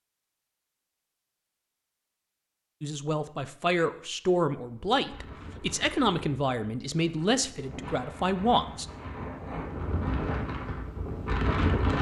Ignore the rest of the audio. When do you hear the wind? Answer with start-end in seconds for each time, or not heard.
4.9-11.9.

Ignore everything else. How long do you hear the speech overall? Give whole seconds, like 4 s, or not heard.
6 s.